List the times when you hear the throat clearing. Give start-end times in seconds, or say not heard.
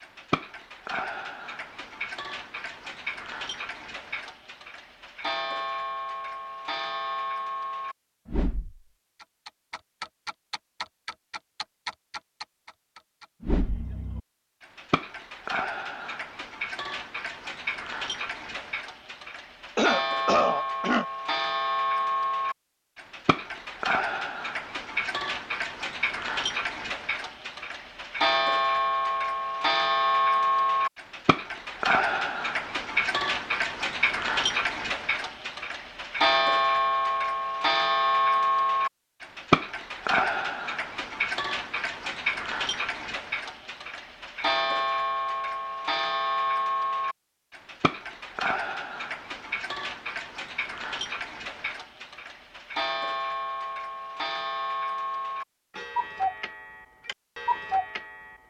19.8-21.1.